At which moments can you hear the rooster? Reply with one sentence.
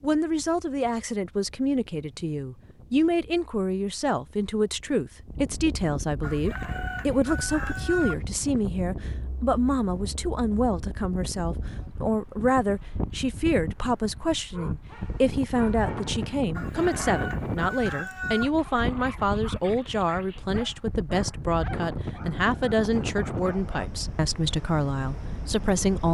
The rooster can be heard from 6.2 to 8.2 s and from 16.6 to 18.5 s.